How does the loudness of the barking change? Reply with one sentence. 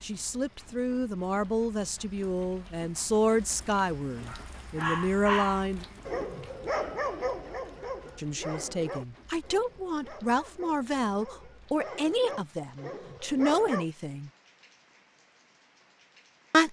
The volume of the barking goes down, then up.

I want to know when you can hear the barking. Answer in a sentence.
You can hear the barking from 4.2 to 13.8 s.